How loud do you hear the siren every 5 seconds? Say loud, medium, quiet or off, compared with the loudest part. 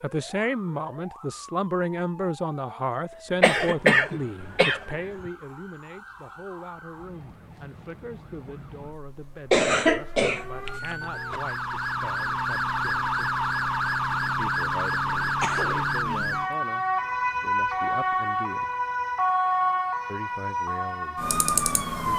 quiet, quiet, loud, loud, loud.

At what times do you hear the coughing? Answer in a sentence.
The coughing can be heard from 3.4 to 5.3 s, from 9.5 to 11.4 s and from 15.4 to 16.4 s.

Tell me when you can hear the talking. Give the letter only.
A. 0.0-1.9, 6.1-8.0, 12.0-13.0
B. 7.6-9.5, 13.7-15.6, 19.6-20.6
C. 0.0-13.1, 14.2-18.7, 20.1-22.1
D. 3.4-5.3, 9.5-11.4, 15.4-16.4
C.